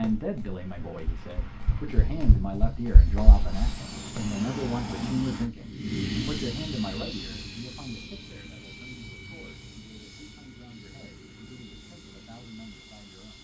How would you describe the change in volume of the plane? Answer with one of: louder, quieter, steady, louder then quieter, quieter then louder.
louder then quieter.